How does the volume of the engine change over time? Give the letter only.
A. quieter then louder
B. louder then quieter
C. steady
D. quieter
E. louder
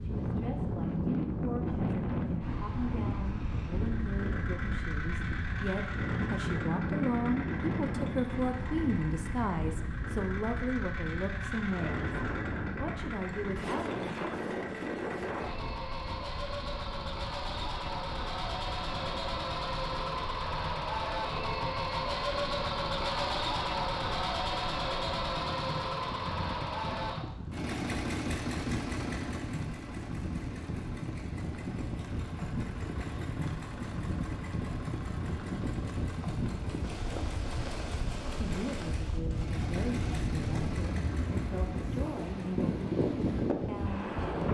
B.